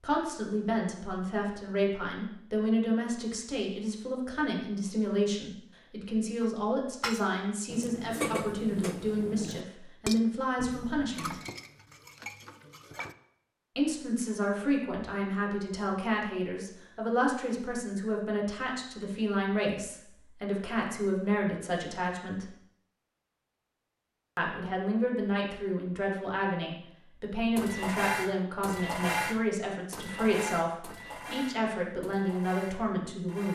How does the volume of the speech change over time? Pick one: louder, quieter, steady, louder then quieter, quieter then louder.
steady.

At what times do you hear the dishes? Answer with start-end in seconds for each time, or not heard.
6.4-13.2, 27.6-33.5.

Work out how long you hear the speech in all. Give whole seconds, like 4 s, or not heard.
29 s.